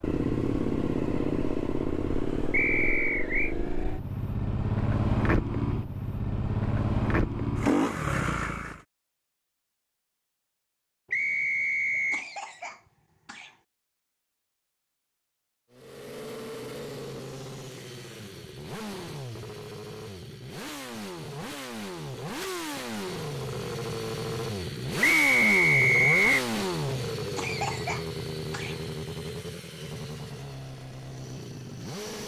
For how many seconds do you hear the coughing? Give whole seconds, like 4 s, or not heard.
3 s.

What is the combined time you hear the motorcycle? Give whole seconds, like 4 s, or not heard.
25 s.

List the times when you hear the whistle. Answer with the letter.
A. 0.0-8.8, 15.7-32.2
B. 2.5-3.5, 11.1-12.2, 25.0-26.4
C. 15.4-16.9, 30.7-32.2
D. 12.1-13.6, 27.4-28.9
B.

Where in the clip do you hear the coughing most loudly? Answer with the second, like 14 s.
28 s.